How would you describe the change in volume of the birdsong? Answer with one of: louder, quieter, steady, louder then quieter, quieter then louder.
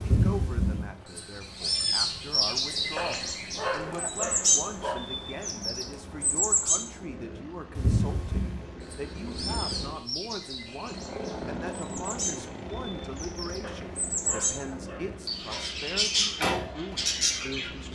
quieter then louder.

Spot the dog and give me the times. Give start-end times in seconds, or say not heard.
3.0-5.0, 13.6-15.7.